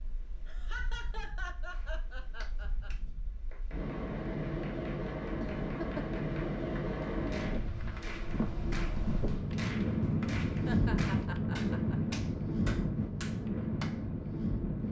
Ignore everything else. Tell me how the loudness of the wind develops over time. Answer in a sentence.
The volume of the wind goes up.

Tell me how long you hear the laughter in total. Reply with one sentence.
You can hear the laughter for 5 seconds altogether.